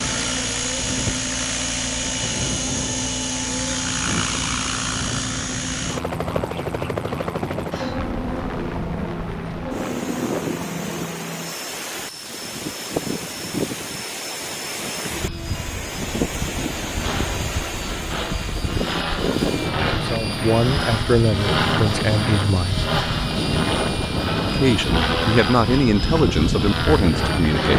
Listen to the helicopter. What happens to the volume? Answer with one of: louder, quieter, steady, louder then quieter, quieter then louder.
quieter then louder.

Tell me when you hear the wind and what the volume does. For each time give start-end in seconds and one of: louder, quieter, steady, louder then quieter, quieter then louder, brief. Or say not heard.
0.0-27.6 louder.